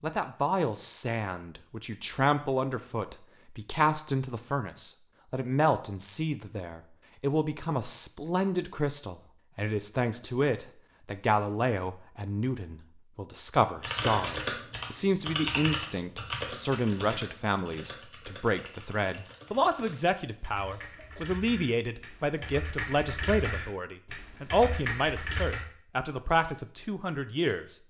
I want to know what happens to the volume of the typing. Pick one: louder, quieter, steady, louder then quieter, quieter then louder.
quieter then louder.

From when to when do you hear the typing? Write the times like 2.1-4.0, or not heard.
13.8-25.6.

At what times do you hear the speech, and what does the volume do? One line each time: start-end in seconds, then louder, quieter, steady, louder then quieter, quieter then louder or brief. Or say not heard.
0.0-27.8 steady.